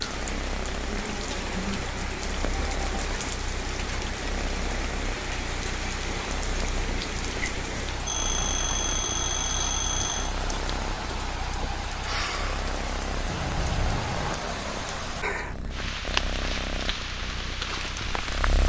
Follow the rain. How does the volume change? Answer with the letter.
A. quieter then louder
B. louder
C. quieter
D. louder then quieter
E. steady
E.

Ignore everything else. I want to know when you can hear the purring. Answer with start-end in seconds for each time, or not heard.
0.0-18.6.